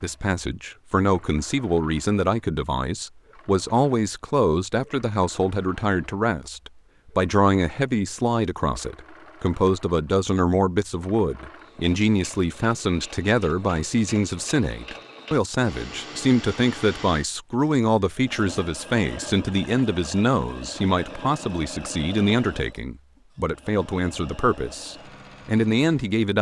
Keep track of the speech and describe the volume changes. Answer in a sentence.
The volume of the speech stays about the same.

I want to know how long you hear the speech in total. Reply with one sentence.
You can hear the speech for 26 seconds altogether.